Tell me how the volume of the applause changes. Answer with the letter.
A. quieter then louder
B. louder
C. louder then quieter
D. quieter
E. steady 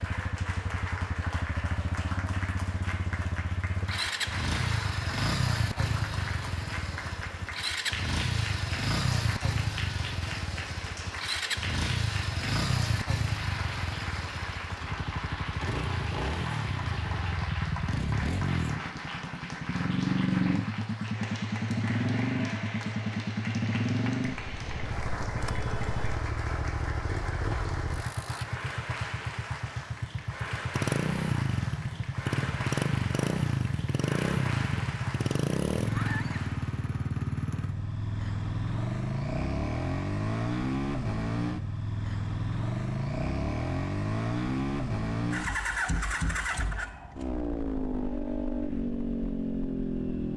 E.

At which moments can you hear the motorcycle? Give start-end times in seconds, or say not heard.
0.0-50.3.